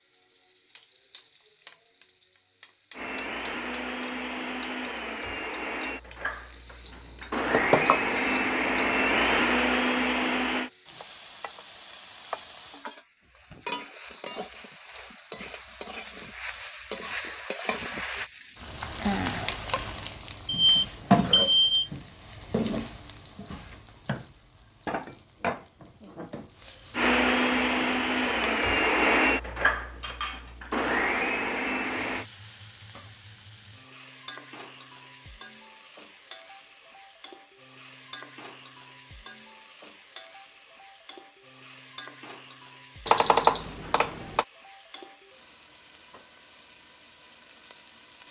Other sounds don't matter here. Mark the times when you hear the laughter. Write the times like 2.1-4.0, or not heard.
not heard.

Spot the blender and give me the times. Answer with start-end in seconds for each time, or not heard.
2.9-10.7, 26.9-32.2.